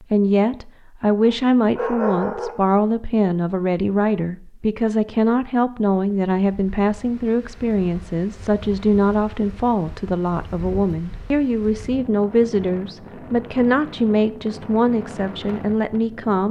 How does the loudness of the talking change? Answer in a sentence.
The volume of the talking stays about the same.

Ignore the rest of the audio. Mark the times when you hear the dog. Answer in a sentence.
The dog can be heard from 1.2 to 2.5 s.